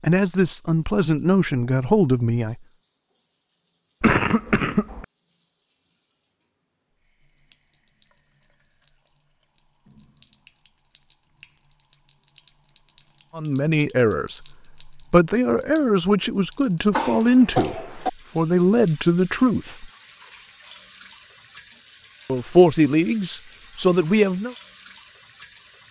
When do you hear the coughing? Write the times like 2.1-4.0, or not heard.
4.0-5.0, 16.9-18.1.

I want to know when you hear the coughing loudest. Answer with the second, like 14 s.
4 s.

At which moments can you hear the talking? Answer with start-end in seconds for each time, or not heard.
0.0-2.5, 13.3-19.9, 22.2-24.6.